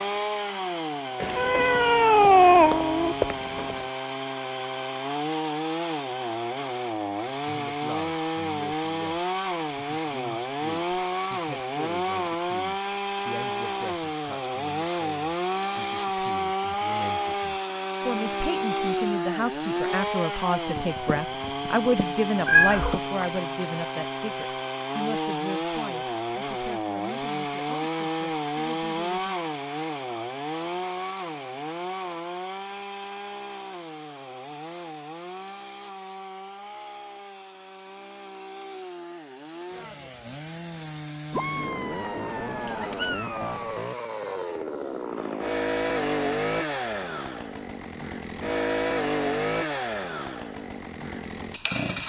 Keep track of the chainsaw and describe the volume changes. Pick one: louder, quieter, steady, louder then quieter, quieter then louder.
quieter then louder.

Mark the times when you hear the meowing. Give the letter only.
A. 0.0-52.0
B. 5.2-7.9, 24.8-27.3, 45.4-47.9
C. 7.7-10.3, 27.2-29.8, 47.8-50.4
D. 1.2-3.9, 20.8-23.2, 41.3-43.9
D.